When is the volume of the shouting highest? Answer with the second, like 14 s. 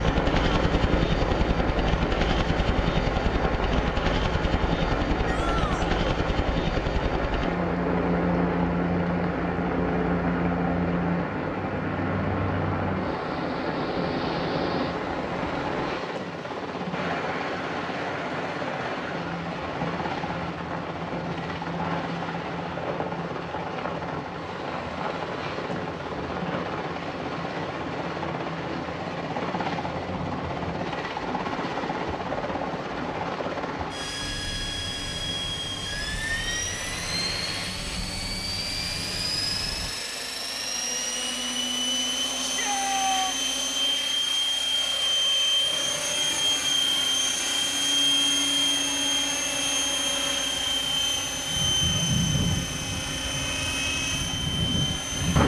43 s.